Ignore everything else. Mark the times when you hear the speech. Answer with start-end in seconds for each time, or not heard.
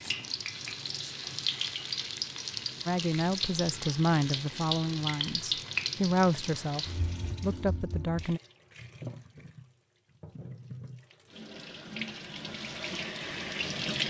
2.9-8.4.